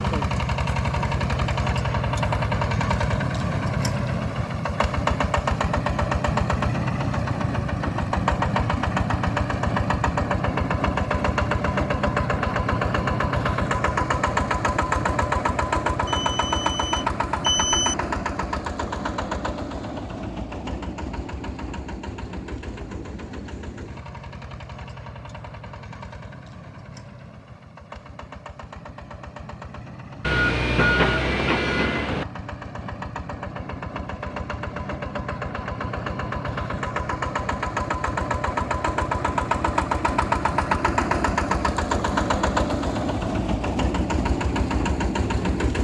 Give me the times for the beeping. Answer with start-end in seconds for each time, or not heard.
16.1-17.9, 30.2-32.2.